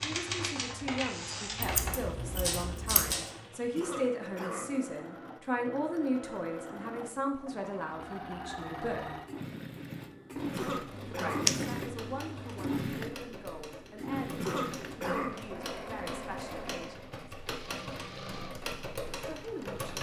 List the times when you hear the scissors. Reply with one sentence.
You can hear the scissors from 1.6 to 3.1 s and from 10.9 to 12.8 s.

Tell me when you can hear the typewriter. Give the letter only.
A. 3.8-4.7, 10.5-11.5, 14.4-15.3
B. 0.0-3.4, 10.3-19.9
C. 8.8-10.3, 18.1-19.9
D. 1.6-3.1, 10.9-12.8
B.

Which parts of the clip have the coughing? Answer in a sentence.
You can hear the coughing from 3.8 to 4.7 s, from 10.5 to 11.5 s and from 14.4 to 15.3 s.